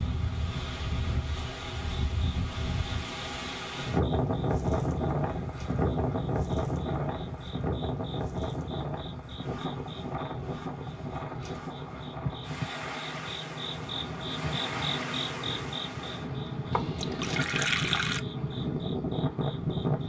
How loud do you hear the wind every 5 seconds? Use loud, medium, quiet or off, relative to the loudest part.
loud, loud, medium, loud.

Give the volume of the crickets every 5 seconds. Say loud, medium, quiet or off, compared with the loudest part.
medium, medium, loud, loud.